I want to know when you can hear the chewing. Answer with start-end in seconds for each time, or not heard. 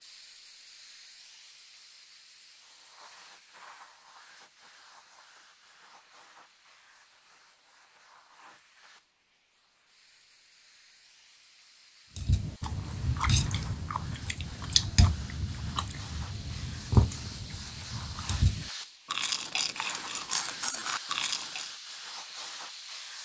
12.2-21.7.